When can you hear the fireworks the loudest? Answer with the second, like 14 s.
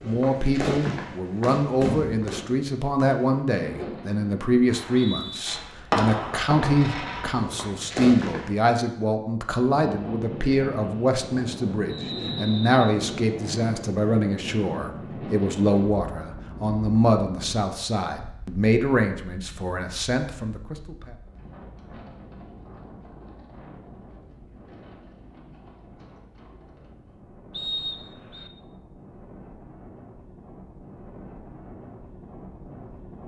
6 s.